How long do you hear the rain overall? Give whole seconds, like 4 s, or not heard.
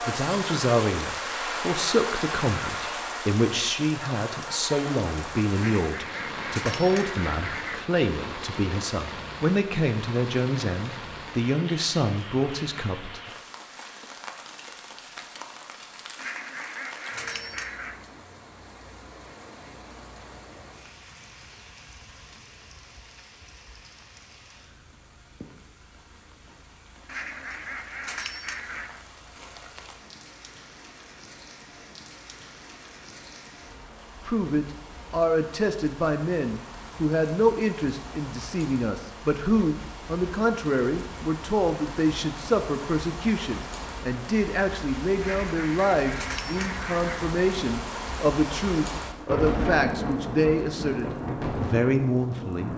53 s.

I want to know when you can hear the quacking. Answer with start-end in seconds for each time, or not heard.
5.5-7.8, 16.1-18.0, 27.1-29.0, 45.2-47.2.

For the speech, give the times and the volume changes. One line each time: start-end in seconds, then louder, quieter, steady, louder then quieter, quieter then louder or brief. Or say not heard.
0.0-13.2 steady
34.2-52.7 steady.